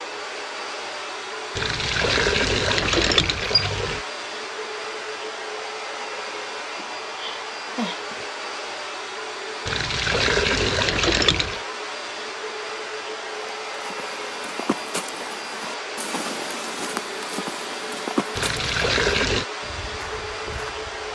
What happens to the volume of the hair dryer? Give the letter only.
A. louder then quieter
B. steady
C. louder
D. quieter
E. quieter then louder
B.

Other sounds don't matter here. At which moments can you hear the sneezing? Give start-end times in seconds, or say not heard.
6.8-8.2.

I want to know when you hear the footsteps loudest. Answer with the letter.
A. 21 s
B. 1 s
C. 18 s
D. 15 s
C.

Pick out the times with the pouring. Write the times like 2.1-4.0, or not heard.
1.6-4.0, 9.7-11.6, 18.4-19.4.